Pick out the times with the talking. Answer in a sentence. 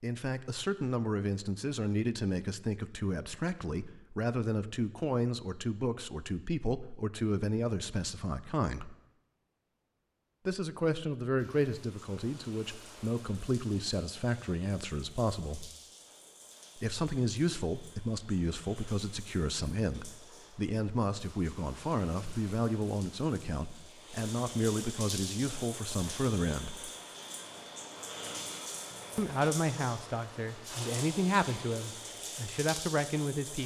You can hear the talking from 0.0 to 8.9 s, from 10.4 to 15.7 s, from 16.8 to 26.9 s and from 29.1 to 33.6 s.